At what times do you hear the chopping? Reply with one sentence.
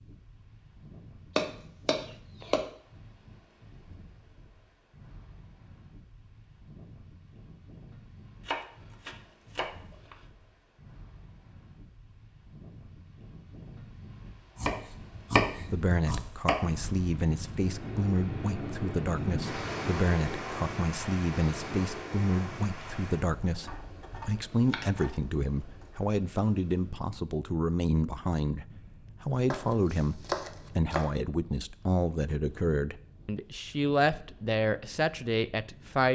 You can hear the chopping from 1.4 to 2.6 s, from 8.4 to 10.2 s, from 14.6 to 16.6 s, from 23.6 to 25.9 s and from 29.5 to 31.1 s.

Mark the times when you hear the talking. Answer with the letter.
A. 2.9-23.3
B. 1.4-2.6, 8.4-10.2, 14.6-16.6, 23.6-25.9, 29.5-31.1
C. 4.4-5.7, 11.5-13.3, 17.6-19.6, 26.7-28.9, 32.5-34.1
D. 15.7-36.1
D.